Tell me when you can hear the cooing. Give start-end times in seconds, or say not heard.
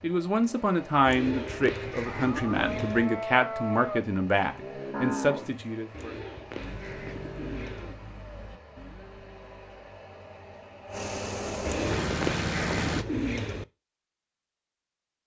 1.1-3.0, 5.9-8.0, 11.7-13.7.